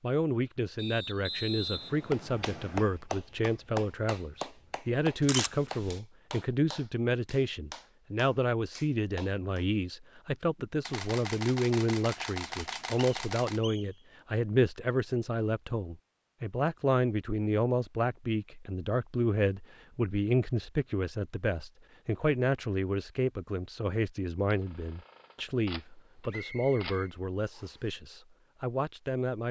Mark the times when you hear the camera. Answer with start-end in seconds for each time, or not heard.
5.2-6.0, 10.8-13.6, 24.5-27.0.